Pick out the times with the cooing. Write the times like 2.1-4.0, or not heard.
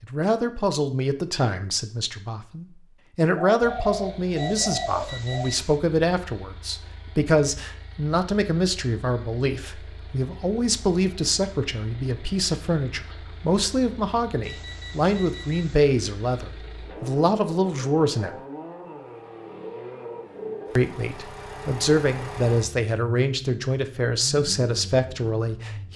3.5-5.5.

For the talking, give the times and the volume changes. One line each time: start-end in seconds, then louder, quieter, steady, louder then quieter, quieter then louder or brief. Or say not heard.
0.0-18.3 steady
20.8-25.9 steady.